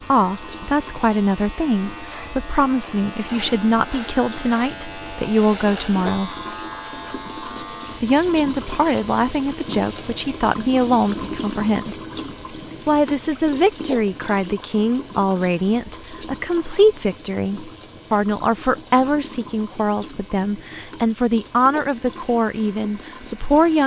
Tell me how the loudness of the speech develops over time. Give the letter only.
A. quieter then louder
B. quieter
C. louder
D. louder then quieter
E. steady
E.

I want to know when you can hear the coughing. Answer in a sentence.
The coughing can't be heard in this clip.